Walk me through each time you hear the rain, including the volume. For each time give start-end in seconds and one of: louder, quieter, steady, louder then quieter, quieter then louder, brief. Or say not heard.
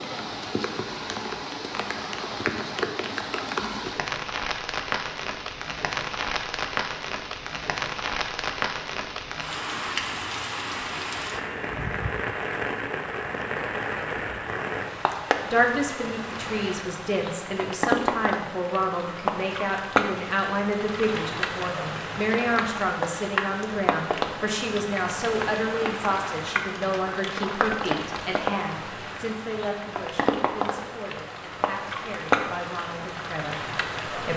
0.0-34.3 steady.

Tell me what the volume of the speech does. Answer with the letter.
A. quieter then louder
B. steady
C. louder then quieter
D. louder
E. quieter
E.